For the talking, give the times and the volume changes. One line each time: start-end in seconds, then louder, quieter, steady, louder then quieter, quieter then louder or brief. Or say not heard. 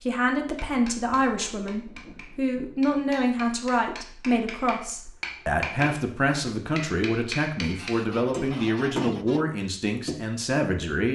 0.0-11.1 steady.